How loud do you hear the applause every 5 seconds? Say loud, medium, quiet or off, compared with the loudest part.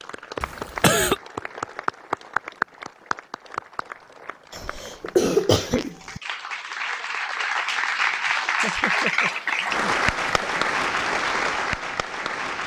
medium, loud, loud.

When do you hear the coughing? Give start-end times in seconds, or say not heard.
0.4-1.1, 4.5-6.2, 8.6-10.6.